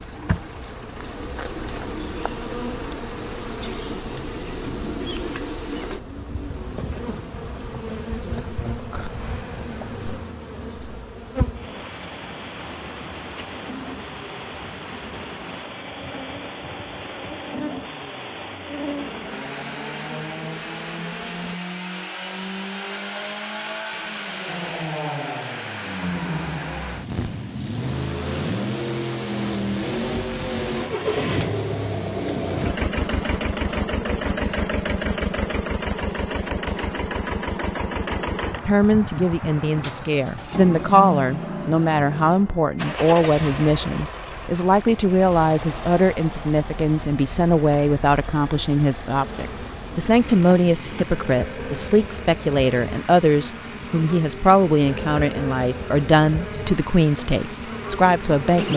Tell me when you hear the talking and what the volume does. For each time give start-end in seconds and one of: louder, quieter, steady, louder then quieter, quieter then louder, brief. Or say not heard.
38.6-58.7 steady.